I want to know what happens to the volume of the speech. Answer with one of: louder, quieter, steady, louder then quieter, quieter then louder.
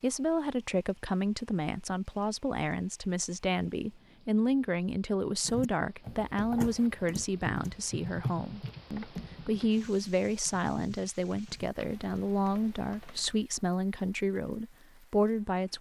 steady.